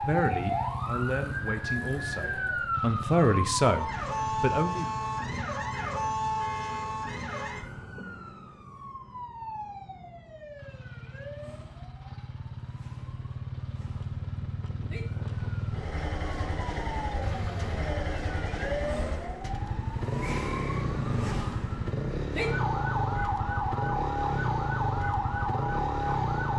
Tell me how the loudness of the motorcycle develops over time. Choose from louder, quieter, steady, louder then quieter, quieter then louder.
quieter then louder.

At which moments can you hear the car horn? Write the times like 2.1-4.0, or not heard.
5.7-7.6, 17.2-17.9.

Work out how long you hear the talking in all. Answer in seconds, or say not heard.
5 s.